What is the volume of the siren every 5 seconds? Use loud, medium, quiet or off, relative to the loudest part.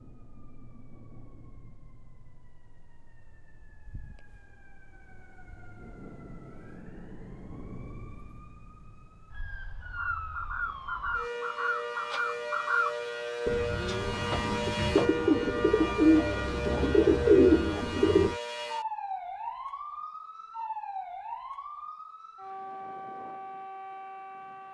quiet, quiet, loud, loud, medium.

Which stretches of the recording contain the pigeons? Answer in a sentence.
The pigeons can be heard from 9.9 to 18.4 s.